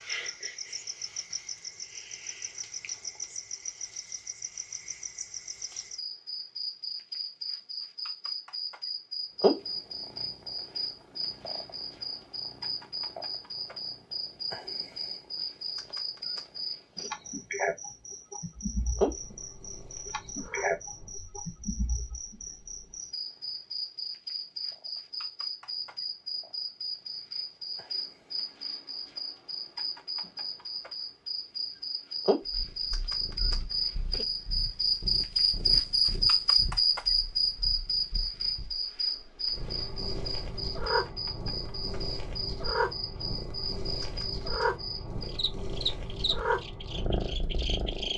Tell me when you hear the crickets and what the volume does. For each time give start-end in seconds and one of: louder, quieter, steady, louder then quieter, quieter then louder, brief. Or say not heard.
0.0-48.1 louder then quieter.